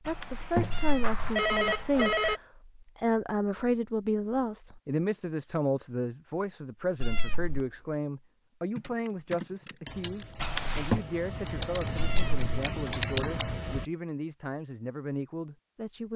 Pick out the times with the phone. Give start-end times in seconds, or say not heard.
0.1-2.4, 10.4-11.0.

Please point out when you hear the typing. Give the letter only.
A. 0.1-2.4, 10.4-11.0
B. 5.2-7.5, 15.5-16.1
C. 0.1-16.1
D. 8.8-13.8
D.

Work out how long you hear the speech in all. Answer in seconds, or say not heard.
16 s.